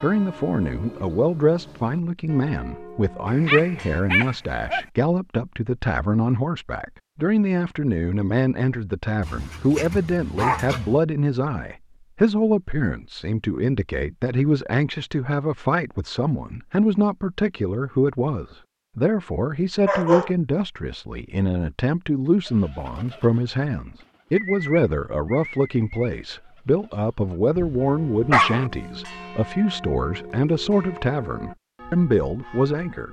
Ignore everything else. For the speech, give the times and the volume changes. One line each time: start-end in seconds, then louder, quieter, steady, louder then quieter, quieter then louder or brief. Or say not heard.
0.0-33.0 steady.